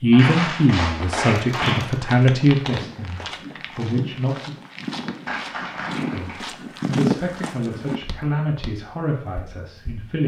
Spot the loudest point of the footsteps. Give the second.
7 s.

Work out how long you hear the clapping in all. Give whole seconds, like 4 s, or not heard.
3 s.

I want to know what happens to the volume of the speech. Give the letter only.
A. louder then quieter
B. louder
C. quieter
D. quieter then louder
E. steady
C.